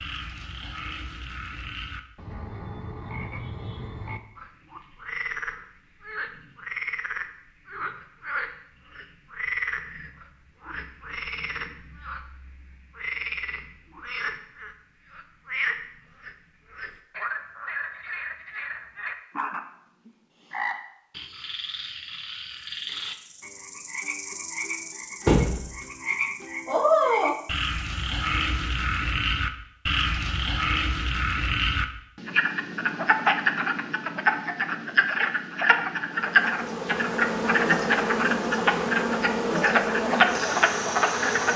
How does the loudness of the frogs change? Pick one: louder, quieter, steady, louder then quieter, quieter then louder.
louder.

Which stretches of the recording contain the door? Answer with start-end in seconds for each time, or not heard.
25.2-25.7.